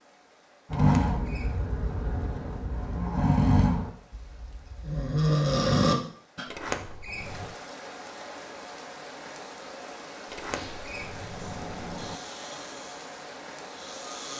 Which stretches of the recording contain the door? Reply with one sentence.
You can hear the door from 0.7 to 2.6 s, from 6.5 to 7.5 s and from 10.2 to 12.2 s.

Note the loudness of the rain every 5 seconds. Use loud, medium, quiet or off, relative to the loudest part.
quiet, loud, loud.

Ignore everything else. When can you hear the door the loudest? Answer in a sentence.
The volume of the door peaks at 7 seconds.